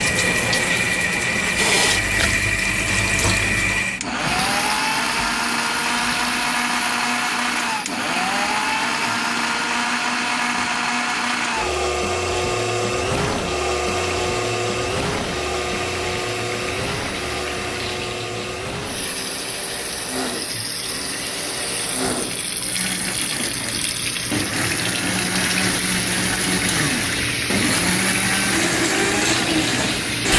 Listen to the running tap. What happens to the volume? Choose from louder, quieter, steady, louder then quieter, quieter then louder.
quieter then louder.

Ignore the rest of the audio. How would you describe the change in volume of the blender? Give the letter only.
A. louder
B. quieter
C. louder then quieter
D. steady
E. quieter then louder
E.